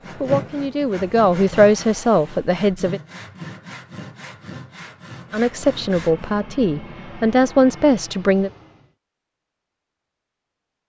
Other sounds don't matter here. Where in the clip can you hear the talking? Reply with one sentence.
You can hear the talking from 0.1 to 3.0 s and from 5.3 to 8.5 s.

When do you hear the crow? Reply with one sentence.
The crow can't be heard in this clip.